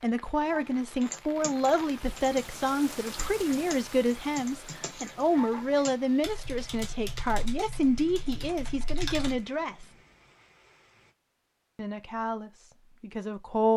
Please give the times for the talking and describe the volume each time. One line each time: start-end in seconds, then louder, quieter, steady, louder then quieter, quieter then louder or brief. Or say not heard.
0.0-9.9 steady
11.8-13.7 brief.